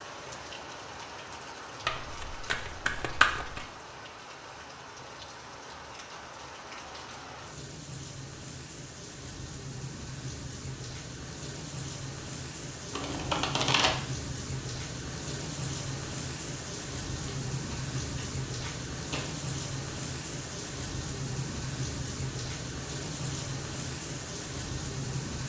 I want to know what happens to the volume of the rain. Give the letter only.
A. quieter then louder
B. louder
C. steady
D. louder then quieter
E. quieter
B.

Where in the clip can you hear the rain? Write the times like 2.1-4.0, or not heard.
0.0-25.4.